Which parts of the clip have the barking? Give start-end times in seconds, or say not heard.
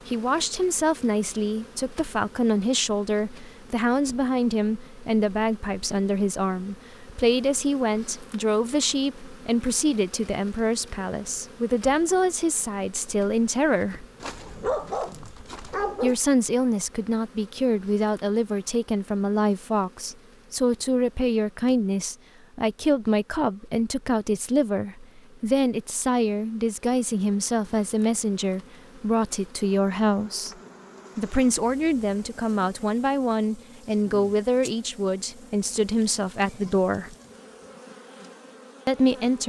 14.2-16.1.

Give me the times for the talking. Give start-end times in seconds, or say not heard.
0.1-14.1, 16.0-30.6, 31.1-37.1, 38.9-39.4.